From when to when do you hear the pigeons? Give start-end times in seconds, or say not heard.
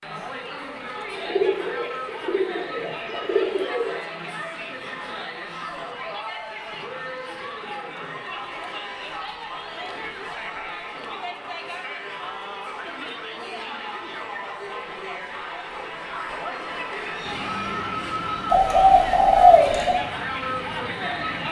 1.1-4.0, 18.5-20.0.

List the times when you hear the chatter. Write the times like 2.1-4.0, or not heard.
0.0-21.4.